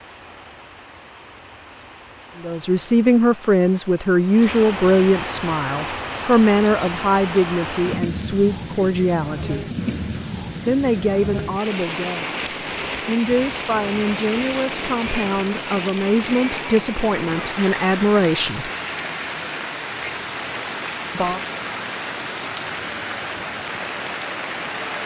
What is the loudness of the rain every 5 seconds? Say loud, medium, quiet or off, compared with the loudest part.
medium, loud, loud, loud, loud.